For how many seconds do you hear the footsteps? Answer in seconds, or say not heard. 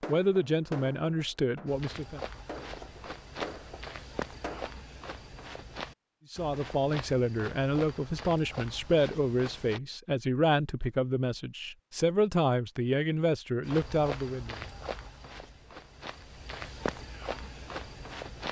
13 s.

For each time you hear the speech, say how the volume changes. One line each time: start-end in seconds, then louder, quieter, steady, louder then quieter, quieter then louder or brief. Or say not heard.
0.1-2.2 brief
6.3-14.6 steady.